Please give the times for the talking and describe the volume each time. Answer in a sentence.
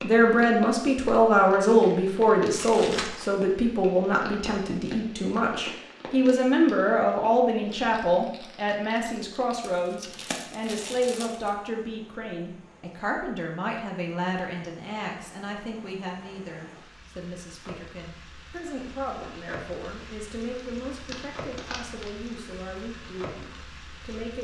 You can hear the talking from 0.0 to 24.3 s, getting quieter.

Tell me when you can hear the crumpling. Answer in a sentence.
You can hear the crumpling from 2.5 to 3.4 s, from 9.6 to 11.6 s and from 20.8 to 22.4 s.